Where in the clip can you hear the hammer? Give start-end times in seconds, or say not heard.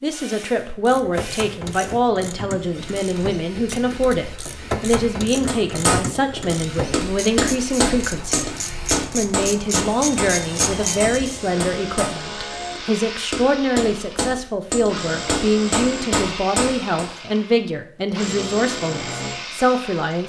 5.5-17.1.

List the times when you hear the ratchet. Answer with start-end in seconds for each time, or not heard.
0.7-11.3.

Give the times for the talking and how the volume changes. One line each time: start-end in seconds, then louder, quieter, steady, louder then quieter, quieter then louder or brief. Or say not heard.
0.0-8.5 steady
9.1-20.2 steady.